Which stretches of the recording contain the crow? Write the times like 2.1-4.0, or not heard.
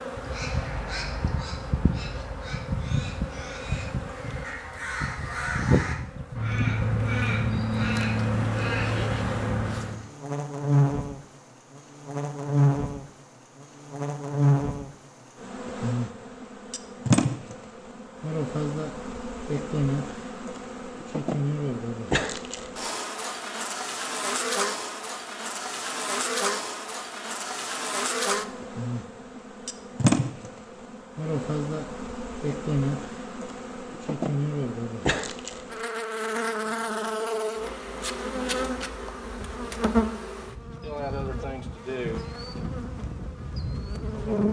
0.1-10.1.